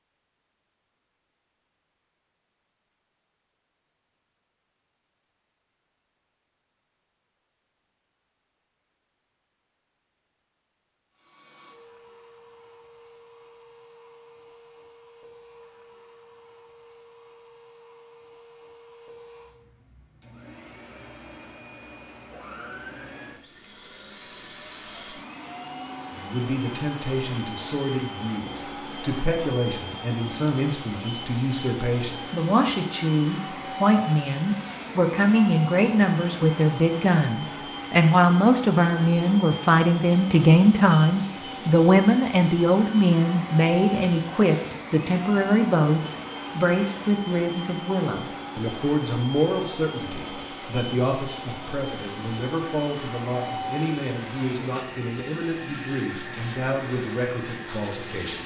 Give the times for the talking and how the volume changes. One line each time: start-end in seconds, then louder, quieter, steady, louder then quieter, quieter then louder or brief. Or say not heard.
26.1-58.4 louder then quieter.